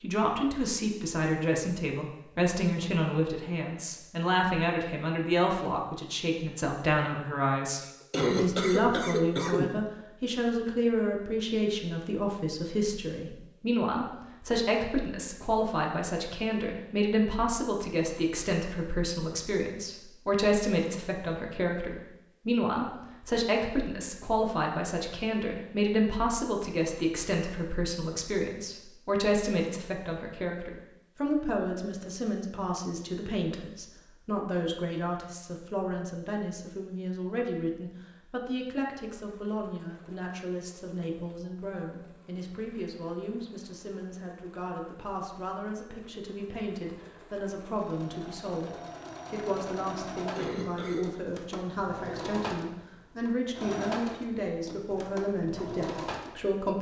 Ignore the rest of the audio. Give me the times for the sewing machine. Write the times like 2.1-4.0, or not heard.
39.1-56.6.